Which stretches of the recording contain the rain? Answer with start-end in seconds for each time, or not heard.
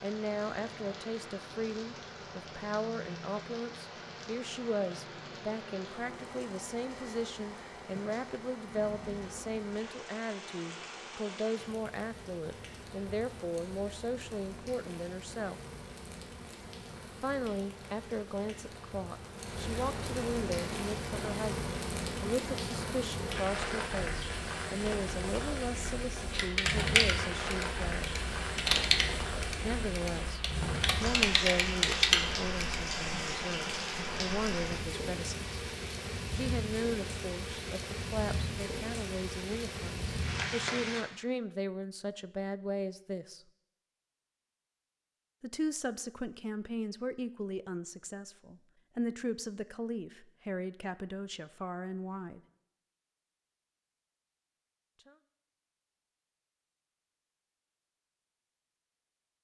0.0-41.0.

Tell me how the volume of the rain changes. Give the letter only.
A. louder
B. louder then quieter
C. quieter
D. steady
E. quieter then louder
A.